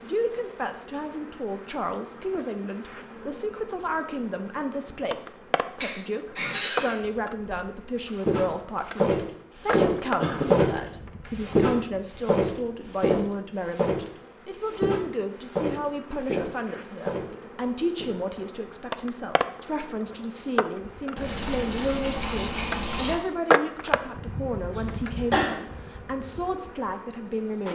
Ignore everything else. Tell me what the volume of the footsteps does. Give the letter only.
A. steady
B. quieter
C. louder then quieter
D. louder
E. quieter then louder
B.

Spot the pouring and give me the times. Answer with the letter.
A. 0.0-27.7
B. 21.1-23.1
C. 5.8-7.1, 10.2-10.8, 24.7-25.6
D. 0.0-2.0
B.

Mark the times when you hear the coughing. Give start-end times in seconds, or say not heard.
5.8-7.1, 10.2-10.8, 24.7-25.6.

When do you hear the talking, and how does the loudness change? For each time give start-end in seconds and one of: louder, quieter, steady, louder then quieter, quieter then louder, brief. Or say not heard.
0.0-27.7 steady.